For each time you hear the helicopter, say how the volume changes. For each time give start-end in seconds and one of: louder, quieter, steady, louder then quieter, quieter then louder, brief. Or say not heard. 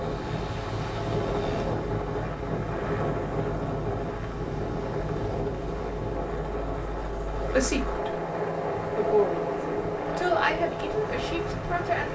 0.0-12.0 louder.